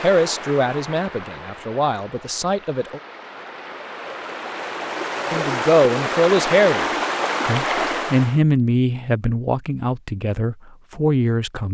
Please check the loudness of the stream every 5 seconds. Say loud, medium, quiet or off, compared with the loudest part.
medium, loud, off.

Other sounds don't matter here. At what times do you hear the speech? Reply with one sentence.
You can hear the speech from 0.0 to 3.0 s, from 5.3 to 6.8 s and from 7.5 to 11.7 s.